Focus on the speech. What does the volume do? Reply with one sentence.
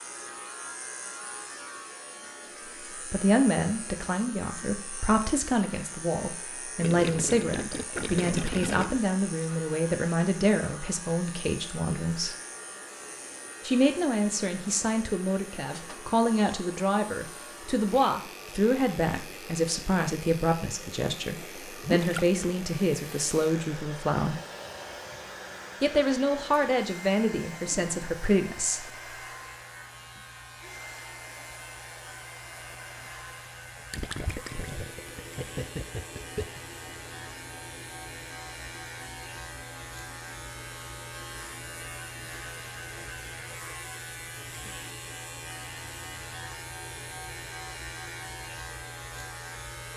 The volume of the speech stays about the same.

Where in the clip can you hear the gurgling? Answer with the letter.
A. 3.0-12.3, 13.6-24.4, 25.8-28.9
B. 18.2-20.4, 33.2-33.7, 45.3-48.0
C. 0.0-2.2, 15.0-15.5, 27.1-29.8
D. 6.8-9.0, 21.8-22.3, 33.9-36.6
D.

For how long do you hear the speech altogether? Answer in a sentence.
You can hear the speech for 23 seconds altogether.